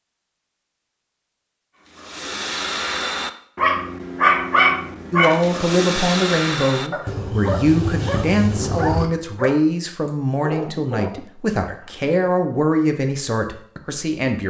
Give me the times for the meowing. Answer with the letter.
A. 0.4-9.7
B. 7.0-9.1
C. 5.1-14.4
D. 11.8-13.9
B.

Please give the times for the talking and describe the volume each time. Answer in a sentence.
The talking can be heard from 5.1 to 14.4 s, at a steady volume.